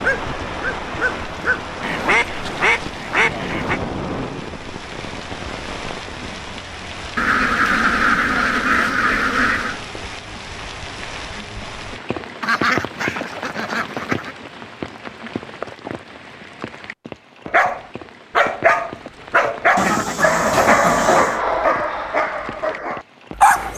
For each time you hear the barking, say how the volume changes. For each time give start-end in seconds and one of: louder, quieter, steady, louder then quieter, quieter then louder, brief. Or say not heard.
0.0-1.6 brief
17.4-23.7 quieter.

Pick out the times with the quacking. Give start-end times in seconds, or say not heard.
1.8-3.8, 7.2-9.8, 12.4-14.3, 19.8-21.4.